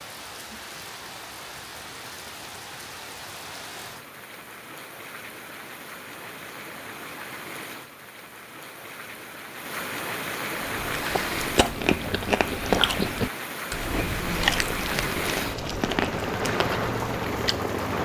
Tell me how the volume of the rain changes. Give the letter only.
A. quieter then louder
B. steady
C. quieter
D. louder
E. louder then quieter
D.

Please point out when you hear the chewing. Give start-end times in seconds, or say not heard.
10.7-17.6.